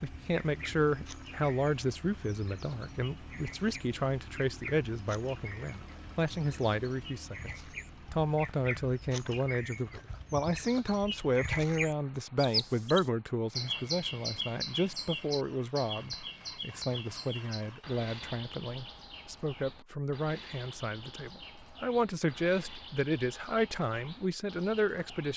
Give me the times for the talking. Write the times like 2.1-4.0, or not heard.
0.0-7.5, 8.1-25.3.